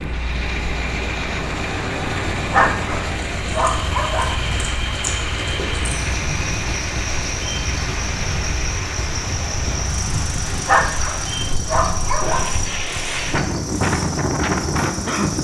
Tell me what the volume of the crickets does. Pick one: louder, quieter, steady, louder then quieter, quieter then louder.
steady.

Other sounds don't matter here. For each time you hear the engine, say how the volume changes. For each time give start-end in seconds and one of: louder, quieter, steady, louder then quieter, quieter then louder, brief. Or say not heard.
0.0-15.4 quieter.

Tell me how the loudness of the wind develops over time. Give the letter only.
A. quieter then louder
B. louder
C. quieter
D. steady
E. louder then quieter
B.